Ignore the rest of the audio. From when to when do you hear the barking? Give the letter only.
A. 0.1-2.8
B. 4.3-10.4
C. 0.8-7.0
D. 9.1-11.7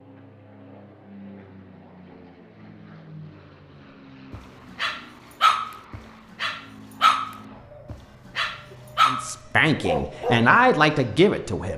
B.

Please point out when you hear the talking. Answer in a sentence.
The talking can be heard from 9.1 to 11.7 s.